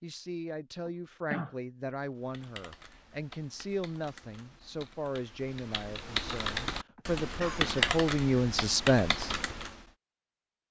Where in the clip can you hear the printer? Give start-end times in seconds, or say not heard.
not heard.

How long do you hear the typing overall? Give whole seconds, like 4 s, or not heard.
8 s.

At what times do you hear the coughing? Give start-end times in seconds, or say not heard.
0.8-1.6, 7.0-8.0.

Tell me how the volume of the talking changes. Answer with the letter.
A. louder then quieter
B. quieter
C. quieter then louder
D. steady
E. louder
E.